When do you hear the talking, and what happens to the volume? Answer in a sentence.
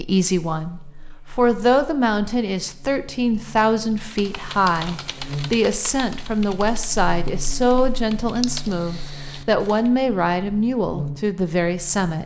The talking can be heard from 0.0 to 12.2 s, at a steady volume.